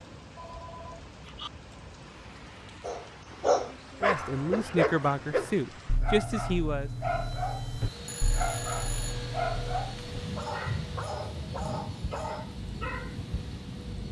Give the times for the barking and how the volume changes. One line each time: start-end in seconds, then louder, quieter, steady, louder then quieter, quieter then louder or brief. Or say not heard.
2.8-13.2 quieter.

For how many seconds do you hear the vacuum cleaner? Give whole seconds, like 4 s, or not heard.
7 s.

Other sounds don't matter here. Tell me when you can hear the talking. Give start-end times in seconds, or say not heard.
4.0-6.9.